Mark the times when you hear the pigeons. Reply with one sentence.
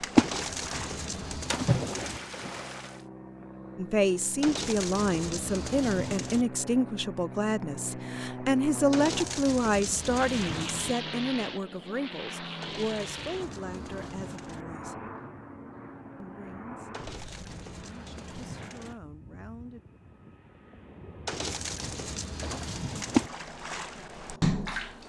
You can hear the pigeons from 0.1 to 2.2 s, from 4.4 to 6.5 s, from 8.9 to 10.9 s, from 12.6 to 14.7 s, from 16.9 to 18.9 s and from 21.2 to 23.3 s.